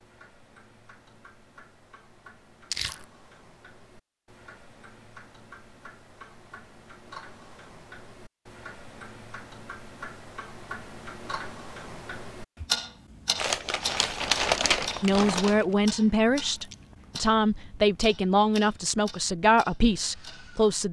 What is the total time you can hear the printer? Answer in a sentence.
The printer can't be heard in this clip.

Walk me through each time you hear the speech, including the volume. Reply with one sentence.
The speech can be heard from 15.0 to 20.8 s, at a steady volume.